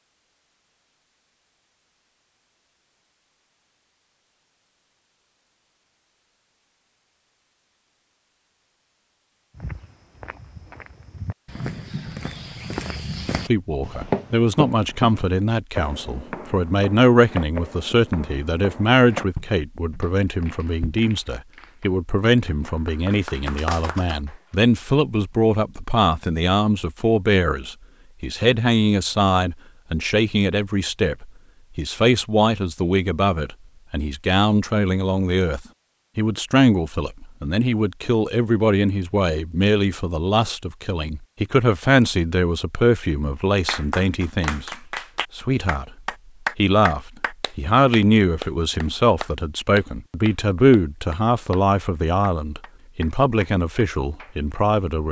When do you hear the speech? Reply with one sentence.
The speech can be heard from 13.4 to 44.8 s, from 45.4 to 45.9 s and from 46.5 to 55.0 s.